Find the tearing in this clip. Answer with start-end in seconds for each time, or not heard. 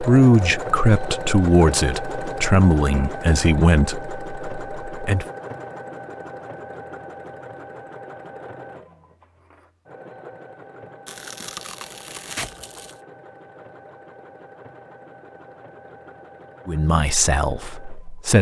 11.1-12.9.